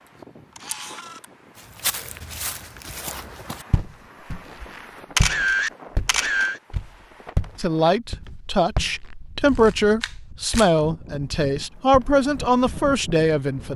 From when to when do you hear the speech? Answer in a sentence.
The speech can be heard from 7.5 to 13.7 s.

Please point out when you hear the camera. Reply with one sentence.
The camera can be heard from 0.6 to 1.2 s, from 5.2 to 6.6 s and from 9.4 to 10.7 s.